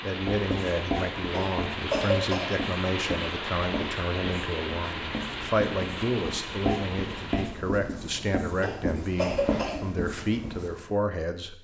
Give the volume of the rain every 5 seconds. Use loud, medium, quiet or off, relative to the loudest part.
loud, loud, off.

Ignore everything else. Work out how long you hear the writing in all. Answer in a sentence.
The writing can be heard for 11 seconds in total.